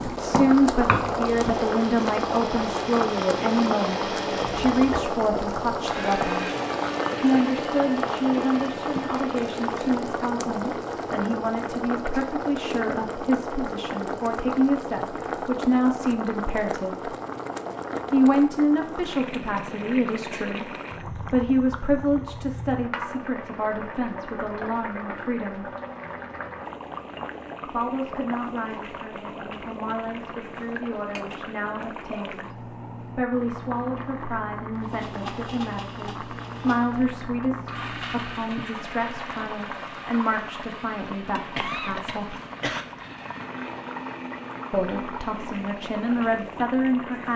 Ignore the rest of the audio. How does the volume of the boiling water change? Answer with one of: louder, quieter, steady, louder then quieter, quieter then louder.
quieter.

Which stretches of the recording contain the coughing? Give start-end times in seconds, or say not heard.
4.3-5.0, 41.5-42.9.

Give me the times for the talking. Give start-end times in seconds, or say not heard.
0.0-6.5, 7.2-17.1, 18.1-25.6, 27.6-32.5, 33.1-42.4, 44.7-47.3.